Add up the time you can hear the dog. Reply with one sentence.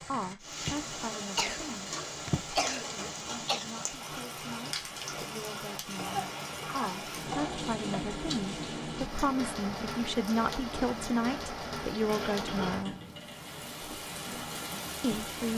You can't hear the dog here.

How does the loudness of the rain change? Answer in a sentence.
The volume of the rain stays about the same.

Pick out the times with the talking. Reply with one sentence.
You can hear the talking from 0.1 to 12.9 s and from 15.0 to 15.5 s.